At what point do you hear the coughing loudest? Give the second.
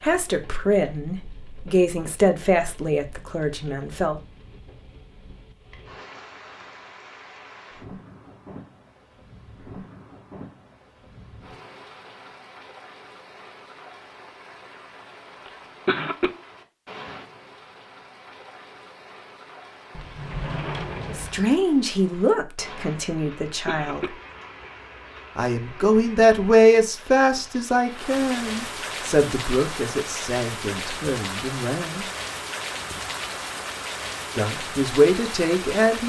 16 s.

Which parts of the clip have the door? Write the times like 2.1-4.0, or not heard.
19.9-21.6.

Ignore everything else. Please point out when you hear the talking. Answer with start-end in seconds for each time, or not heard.
0.0-4.2, 21.1-24.0, 25.4-32.0, 34.4-36.0.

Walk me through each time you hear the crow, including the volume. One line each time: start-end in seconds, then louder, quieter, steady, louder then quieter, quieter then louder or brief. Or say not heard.
not heard.